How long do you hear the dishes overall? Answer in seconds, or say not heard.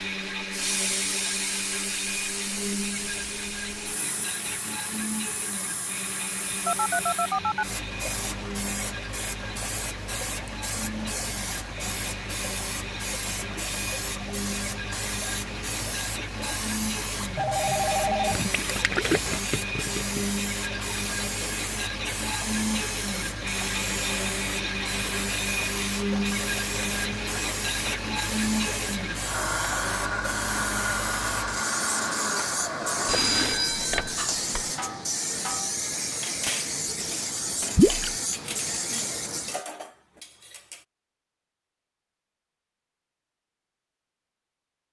7 s.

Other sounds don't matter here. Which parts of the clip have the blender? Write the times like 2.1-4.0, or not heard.
0.0-33.6.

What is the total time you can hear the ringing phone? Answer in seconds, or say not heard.
4 s.